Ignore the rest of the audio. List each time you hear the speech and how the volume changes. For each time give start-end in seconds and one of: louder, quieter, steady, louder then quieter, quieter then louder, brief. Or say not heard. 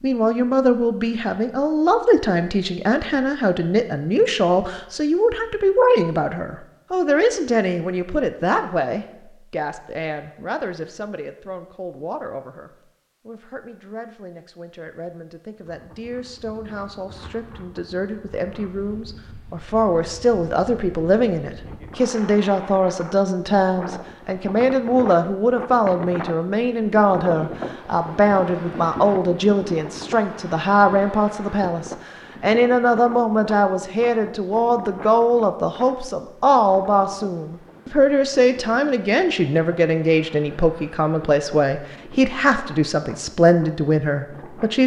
0.0-44.8 quieter then louder.